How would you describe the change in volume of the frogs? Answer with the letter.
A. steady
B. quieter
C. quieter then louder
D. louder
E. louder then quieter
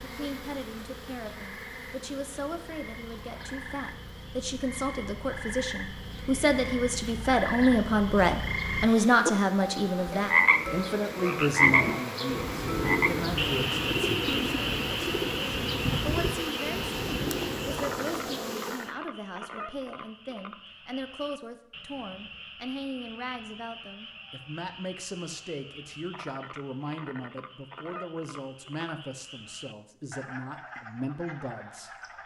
E.